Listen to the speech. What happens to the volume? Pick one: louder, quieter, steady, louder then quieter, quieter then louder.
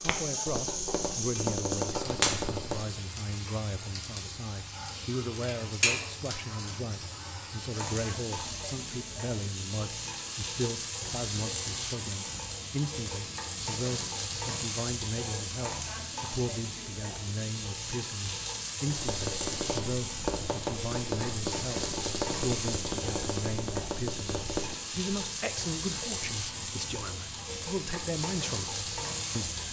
steady.